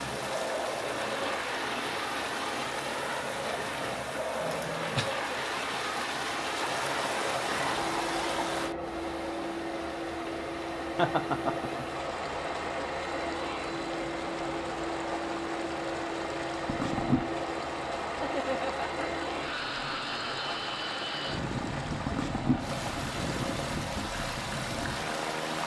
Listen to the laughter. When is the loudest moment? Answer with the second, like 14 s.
11 s.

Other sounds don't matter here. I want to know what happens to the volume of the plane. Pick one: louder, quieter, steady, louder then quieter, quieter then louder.
steady.